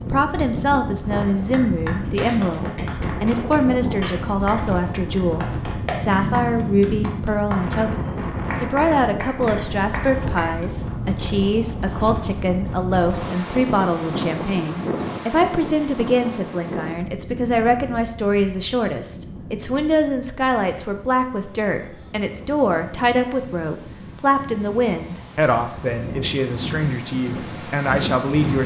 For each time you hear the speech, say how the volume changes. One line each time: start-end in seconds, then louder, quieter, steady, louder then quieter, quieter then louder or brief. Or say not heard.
0.0-28.6 steady.